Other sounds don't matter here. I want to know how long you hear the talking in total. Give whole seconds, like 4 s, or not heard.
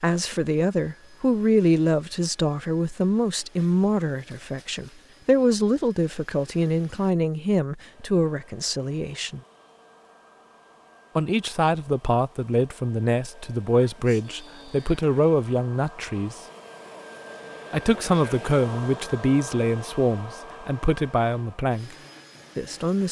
19 s.